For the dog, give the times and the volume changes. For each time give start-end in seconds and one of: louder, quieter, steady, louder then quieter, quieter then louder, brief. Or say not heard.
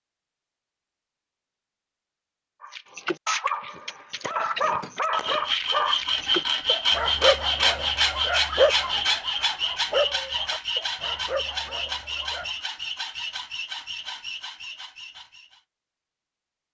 2.6-12.6 quieter.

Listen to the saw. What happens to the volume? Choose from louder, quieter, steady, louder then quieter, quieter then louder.
quieter.